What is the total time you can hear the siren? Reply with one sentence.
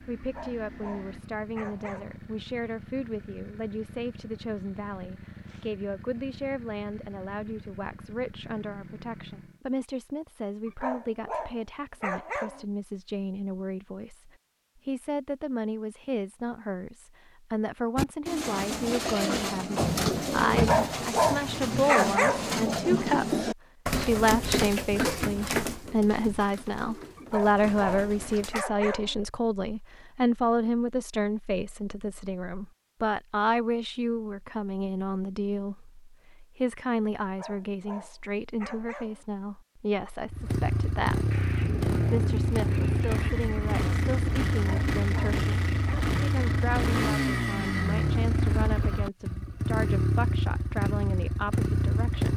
You can't hear the siren here.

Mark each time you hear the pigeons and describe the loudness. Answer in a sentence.
You can hear the pigeons from 17.9 to 28.6 s, getting quieter.